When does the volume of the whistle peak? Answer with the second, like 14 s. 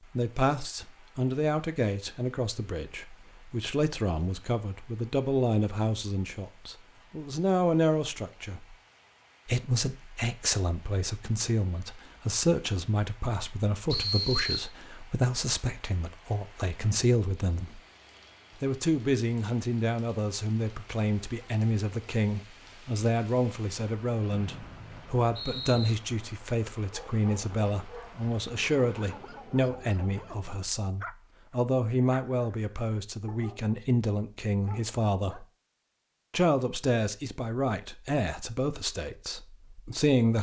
14 s.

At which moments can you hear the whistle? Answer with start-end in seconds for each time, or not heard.
13.9-14.7, 24.3-25.9.